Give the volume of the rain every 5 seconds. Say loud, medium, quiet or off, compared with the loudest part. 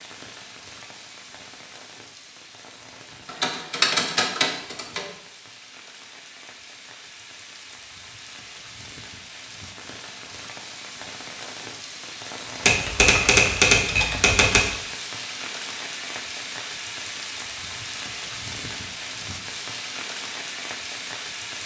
medium, medium, loud, loud, loud.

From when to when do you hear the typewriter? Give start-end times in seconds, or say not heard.
3.2-5.0, 12.7-14.7.